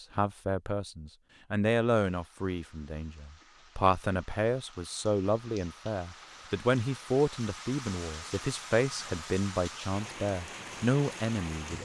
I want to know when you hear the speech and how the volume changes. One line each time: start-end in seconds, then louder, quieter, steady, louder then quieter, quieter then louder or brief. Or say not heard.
0.0-11.8 steady.